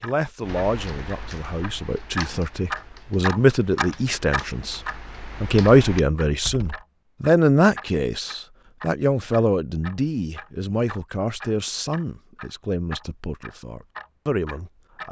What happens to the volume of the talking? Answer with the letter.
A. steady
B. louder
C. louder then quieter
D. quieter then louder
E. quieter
C.